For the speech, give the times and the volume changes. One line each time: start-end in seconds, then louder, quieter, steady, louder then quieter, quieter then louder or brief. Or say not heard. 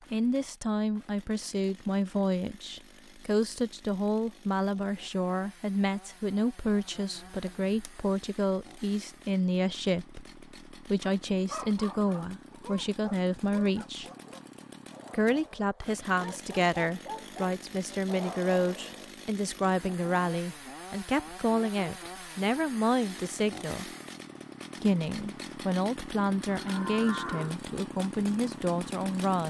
0.1-14.1 steady
15.1-23.9 steady
24.8-29.4 steady.